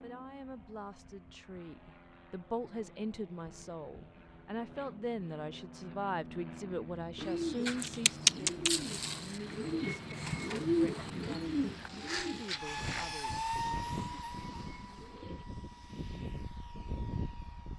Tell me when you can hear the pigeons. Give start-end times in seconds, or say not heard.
7.2-15.4.